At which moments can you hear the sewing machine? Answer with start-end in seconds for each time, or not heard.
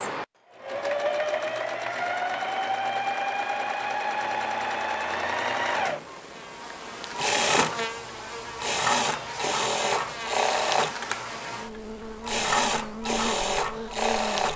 0.0-14.5.